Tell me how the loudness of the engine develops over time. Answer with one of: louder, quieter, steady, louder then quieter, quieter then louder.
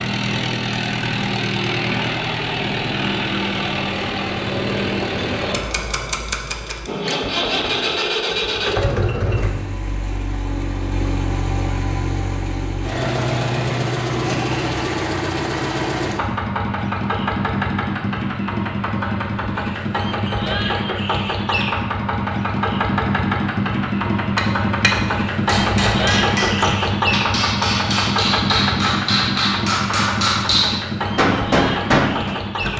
steady.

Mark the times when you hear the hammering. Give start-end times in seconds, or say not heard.
24.4-32.4.